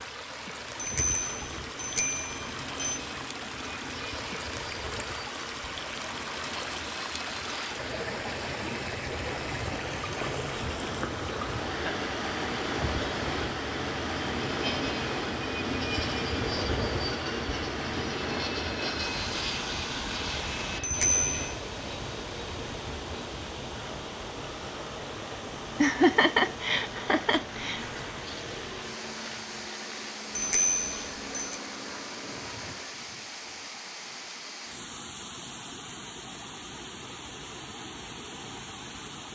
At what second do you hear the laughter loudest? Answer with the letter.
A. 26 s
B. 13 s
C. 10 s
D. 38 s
A.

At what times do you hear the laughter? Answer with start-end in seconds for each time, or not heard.
11.7-12.1, 25.8-27.9.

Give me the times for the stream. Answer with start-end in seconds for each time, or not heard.
0.0-39.2.